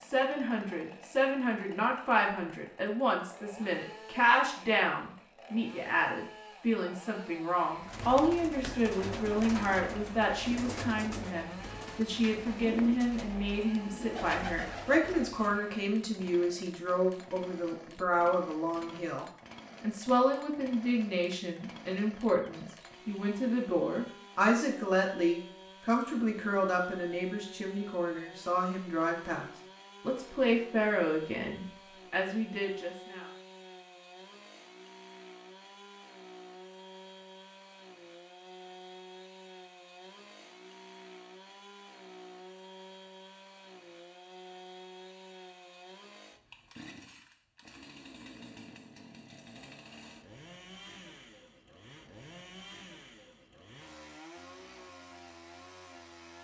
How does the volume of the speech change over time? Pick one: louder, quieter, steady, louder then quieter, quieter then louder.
steady.